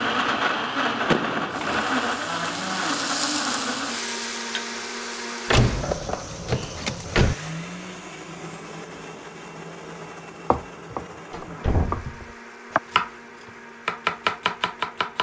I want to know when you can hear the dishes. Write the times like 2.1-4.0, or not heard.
not heard.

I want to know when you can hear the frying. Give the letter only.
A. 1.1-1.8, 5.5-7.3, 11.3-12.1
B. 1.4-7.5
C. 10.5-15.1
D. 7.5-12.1
B.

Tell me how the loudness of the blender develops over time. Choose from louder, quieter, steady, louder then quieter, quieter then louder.
quieter.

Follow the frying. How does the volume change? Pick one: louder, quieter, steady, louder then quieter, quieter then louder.
louder then quieter.